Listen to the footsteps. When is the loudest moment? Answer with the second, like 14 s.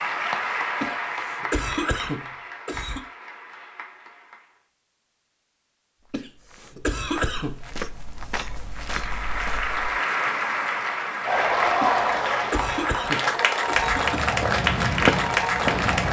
15 s.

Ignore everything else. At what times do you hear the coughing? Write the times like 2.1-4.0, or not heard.
0.8-3.0, 6.1-7.6, 11.8-14.3.